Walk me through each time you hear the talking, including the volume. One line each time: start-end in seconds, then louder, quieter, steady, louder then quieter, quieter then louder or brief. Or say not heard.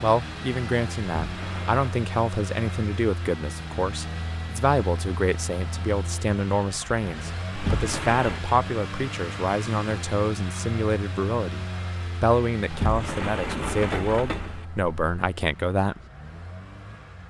0.0-16.0 steady.